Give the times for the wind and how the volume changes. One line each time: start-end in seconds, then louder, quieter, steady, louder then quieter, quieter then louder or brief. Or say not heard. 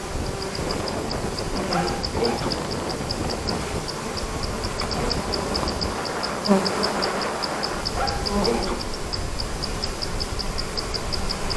0.0-11.5 quieter.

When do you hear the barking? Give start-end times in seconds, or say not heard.
1.6-2.5, 8.0-8.8.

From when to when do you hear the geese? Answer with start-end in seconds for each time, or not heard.
not heard.